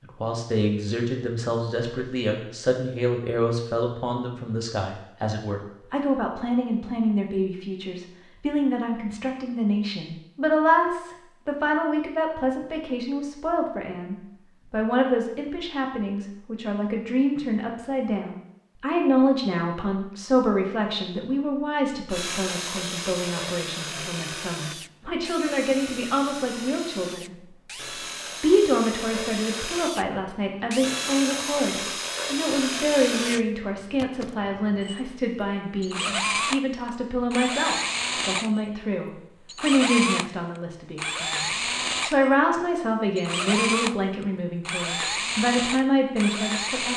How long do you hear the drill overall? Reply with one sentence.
You can hear the drill for 25 seconds altogether.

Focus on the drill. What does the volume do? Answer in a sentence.
The volume of the drill goes up.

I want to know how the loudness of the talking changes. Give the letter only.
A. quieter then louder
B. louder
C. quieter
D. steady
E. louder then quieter
D.